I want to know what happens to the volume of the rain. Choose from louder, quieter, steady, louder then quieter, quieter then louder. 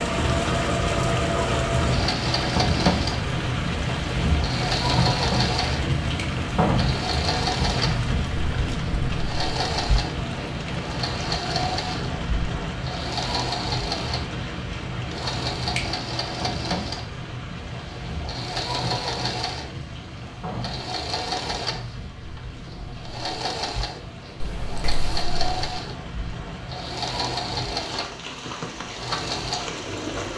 quieter.